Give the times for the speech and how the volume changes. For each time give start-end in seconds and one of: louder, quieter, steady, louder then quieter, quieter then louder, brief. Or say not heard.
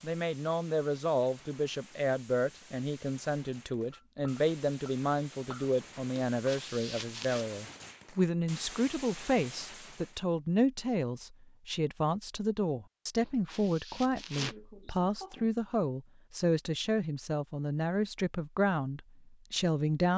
0.0-20.1 steady.